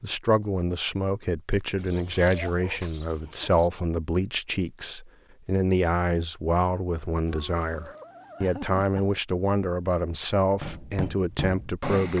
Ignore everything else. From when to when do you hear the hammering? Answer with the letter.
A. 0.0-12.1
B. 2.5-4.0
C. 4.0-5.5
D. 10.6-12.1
D.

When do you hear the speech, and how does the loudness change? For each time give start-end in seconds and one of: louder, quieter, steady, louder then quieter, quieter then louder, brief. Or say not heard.
0.0-12.1 steady.